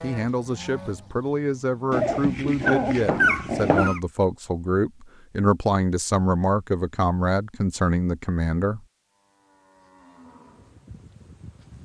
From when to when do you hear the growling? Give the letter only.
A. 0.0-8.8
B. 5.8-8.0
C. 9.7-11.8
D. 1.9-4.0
D.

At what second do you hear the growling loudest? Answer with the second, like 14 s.
3 s.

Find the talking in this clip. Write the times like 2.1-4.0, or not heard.
0.0-8.8.